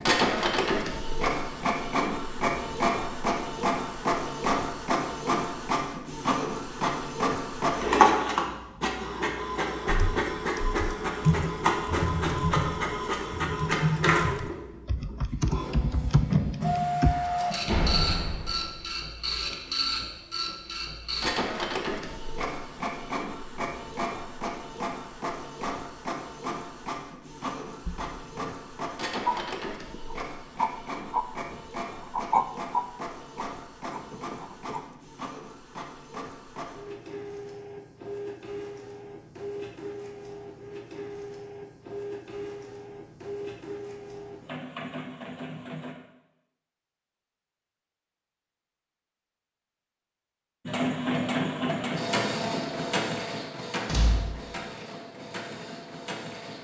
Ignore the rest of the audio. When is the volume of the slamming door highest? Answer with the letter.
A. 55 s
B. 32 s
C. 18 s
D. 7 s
C.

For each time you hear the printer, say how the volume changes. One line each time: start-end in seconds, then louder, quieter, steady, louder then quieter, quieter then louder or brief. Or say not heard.
0.0-46.0 quieter
50.6-56.5 quieter.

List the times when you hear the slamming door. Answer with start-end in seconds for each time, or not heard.
17.6-18.8, 53.9-54.4.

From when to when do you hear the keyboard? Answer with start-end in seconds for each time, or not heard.
9.8-17.1.